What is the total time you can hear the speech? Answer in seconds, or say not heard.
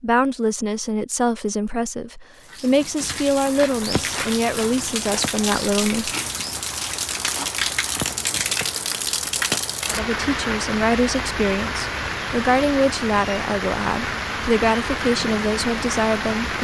13 s.